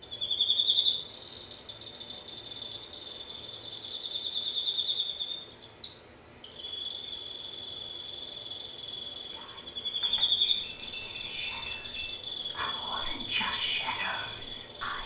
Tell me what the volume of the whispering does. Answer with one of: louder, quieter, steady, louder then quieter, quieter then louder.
louder.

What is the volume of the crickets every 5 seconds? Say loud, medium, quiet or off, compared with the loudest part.
loud, medium, loud.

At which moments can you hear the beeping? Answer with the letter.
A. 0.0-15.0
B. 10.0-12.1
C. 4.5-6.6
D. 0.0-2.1
B.